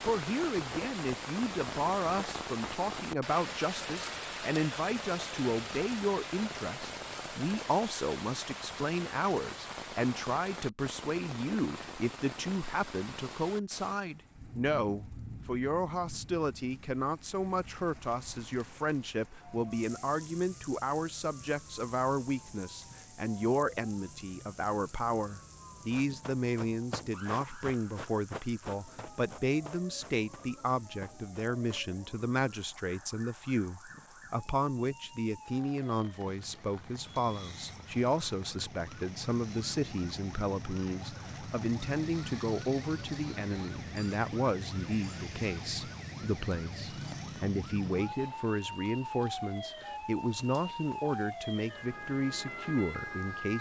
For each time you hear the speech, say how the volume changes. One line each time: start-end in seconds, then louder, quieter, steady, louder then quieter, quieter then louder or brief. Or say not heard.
0.1-53.5 steady.